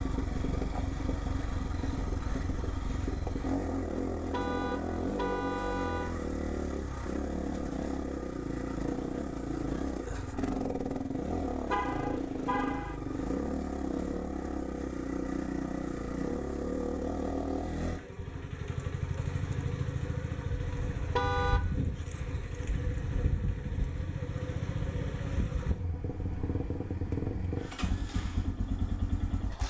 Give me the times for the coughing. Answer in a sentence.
You can't hear the coughing here.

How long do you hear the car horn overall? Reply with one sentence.
The car horn can be heard for 4 seconds in total.